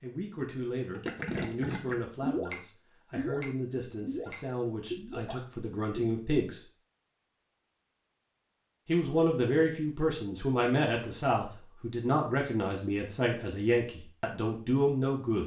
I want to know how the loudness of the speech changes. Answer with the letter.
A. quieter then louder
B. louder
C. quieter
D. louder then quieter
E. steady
B.